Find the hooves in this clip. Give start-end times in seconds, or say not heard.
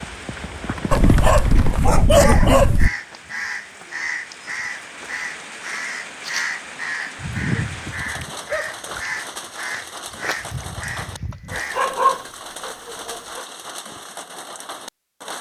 0.0-1.8.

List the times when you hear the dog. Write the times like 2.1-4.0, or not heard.
0.9-2.9, 7.2-8.7, 11.5-13.4.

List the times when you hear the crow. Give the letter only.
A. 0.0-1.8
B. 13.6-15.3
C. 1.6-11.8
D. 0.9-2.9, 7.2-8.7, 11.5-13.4
C.